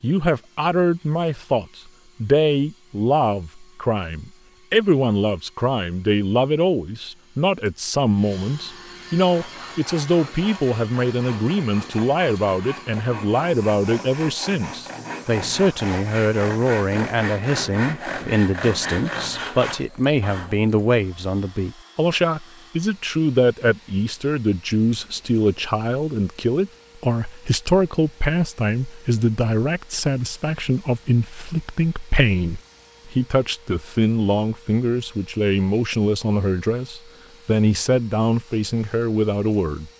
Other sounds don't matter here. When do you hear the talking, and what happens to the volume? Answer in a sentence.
The talking can be heard from 0.0 to 39.9 s, at a steady volume.